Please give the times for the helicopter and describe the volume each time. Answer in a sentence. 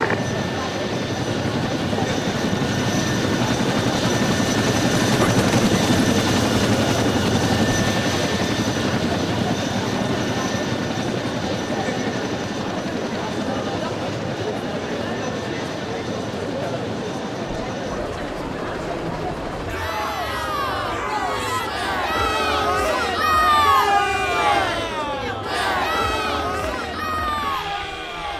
The helicopter can be heard from 0.0 to 28.3 s, getting quieter.